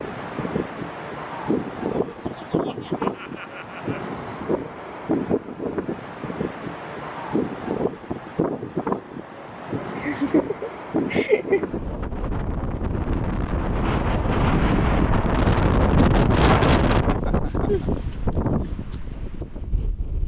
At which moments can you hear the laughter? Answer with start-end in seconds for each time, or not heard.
1.9-4.1, 9.9-11.6, 17.1-17.9.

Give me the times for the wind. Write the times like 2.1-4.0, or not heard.
0.0-20.2.